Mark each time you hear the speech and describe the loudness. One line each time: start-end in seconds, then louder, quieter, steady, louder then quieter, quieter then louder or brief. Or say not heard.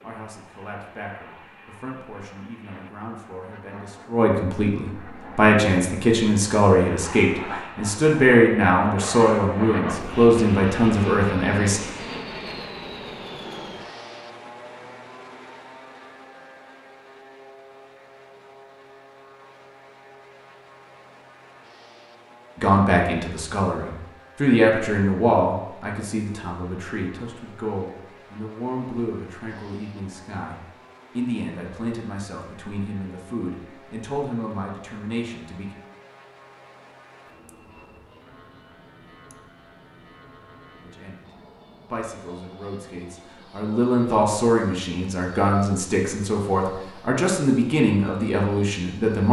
0.0-11.8 louder
22.6-35.8 quieter
40.8-49.2 louder.